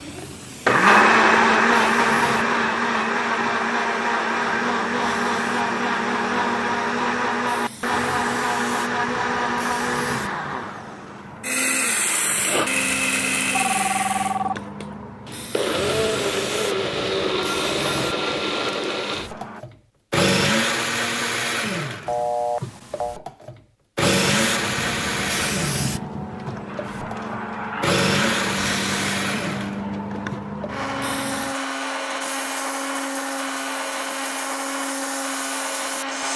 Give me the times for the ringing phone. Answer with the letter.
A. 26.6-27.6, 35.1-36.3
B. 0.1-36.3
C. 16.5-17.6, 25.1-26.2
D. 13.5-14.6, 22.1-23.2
D.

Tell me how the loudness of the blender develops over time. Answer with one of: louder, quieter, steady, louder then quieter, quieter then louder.
quieter.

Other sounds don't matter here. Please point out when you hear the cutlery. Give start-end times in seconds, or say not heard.
not heard.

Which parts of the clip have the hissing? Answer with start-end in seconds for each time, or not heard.
0.0-19.6, 24.1-36.3.